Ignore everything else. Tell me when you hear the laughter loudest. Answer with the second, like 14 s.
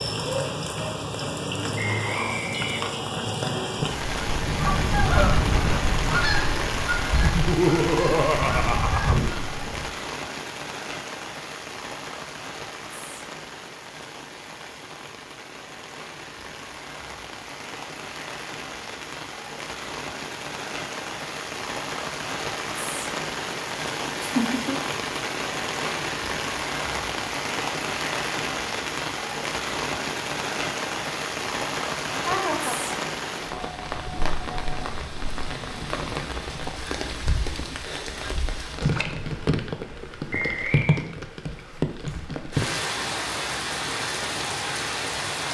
8 s.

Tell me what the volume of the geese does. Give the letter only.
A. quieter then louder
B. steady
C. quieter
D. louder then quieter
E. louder
A.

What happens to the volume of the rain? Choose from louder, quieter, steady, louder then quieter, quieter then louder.
quieter then louder.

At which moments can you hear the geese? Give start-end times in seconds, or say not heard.
4.0-9.9.